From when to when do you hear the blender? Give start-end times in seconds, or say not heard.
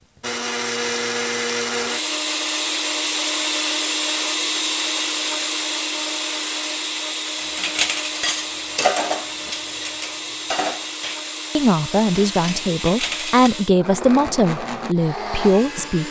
0.1-16.0.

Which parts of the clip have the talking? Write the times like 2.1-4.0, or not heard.
11.6-16.0.